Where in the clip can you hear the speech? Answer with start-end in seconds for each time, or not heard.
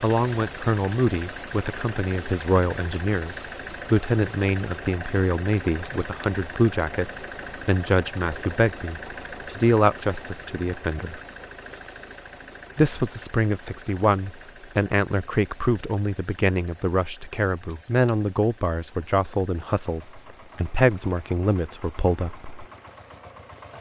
0.0-11.2, 12.8-22.5.